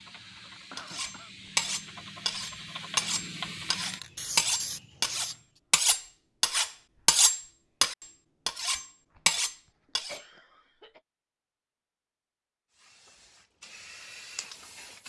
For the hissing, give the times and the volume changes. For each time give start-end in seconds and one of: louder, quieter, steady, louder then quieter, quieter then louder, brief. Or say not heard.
0.0-5.6 louder
12.7-15.0 brief.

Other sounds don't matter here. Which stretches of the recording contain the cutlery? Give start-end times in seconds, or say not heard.
0.8-10.2.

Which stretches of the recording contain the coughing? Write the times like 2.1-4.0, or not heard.
0.1-1.3, 9.7-11.0.